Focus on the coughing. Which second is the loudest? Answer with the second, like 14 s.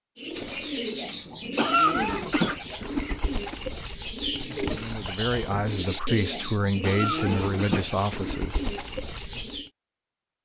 2 s.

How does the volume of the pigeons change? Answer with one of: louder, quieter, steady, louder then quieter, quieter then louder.
steady.